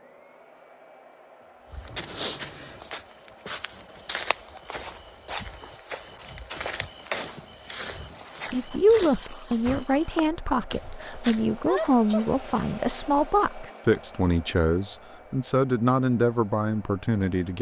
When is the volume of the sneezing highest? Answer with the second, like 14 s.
12 s.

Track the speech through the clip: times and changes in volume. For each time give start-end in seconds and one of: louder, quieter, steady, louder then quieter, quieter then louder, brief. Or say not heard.
8.5-17.5 steady.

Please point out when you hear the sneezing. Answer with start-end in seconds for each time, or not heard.
1.9-2.8, 11.7-12.3.